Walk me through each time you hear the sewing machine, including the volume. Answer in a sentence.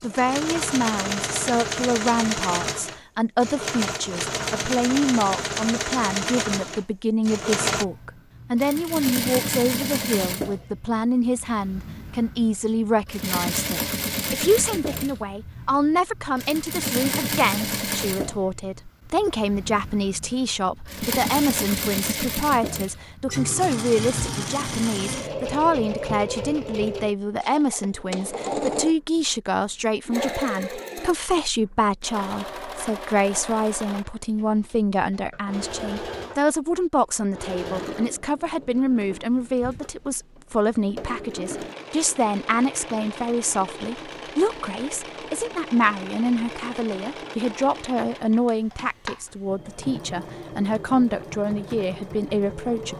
You can hear the sewing machine from 0.0 to 52.9 s, getting quieter.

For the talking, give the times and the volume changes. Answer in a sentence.
The talking can be heard from 0.0 to 52.9 s, at a steady volume.